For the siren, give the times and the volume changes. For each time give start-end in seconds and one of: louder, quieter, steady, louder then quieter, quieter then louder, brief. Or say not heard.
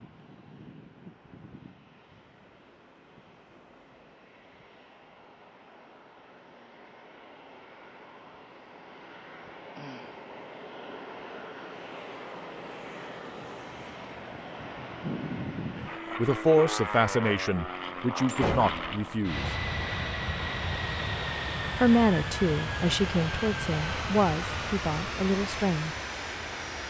not heard.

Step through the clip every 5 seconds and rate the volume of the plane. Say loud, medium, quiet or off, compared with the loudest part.
quiet, quiet, medium, loud, loud, loud.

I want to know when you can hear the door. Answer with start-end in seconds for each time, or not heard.
18.2-18.9.